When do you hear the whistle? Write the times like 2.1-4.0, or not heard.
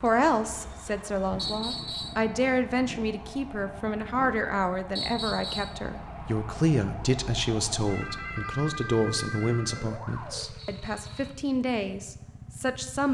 1.4-2.2, 5.0-5.8, 10.6-11.4.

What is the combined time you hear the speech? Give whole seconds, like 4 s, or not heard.
13 s.